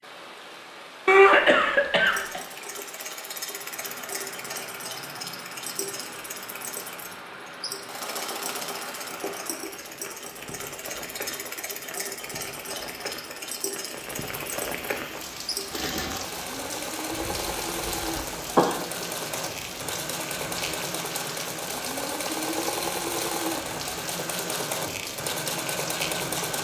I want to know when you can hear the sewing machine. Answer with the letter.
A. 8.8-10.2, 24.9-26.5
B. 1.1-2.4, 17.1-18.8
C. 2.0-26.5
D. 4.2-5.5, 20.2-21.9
C.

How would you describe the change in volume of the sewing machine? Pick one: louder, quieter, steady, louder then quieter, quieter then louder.
louder.